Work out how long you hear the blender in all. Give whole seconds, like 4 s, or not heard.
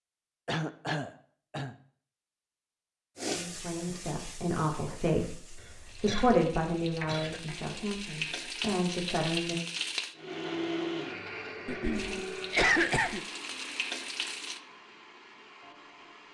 6 s.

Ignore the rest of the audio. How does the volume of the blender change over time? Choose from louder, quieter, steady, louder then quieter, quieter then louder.
quieter.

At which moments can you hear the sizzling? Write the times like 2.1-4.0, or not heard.
3.1-10.2, 11.9-14.6.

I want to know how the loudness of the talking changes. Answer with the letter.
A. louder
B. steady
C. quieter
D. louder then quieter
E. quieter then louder
D.